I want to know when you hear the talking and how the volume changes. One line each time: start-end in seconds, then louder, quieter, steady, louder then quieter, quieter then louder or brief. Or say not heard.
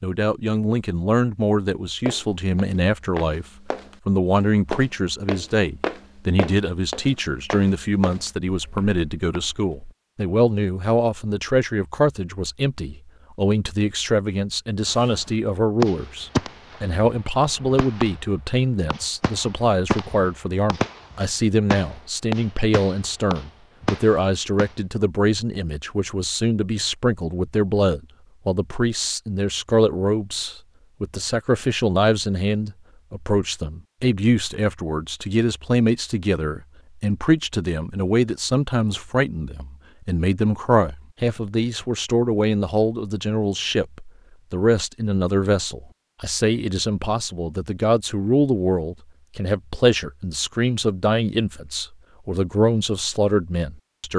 0.0-54.1 steady.